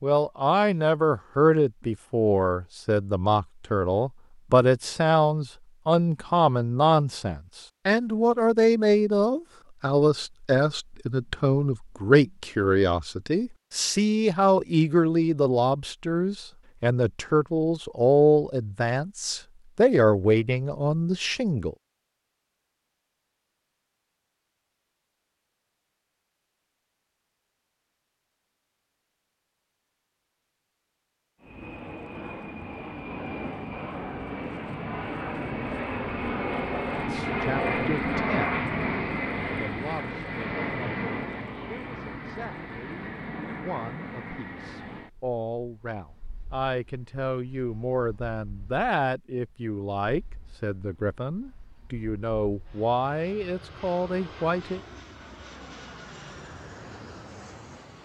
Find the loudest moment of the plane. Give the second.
38 s.